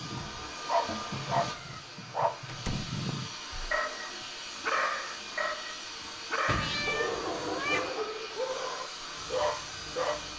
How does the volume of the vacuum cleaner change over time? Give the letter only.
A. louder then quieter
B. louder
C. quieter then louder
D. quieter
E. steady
E.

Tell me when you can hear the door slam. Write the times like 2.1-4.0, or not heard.
2.5-3.0, 6.0-7.0.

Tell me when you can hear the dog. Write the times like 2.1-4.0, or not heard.
0.0-10.3.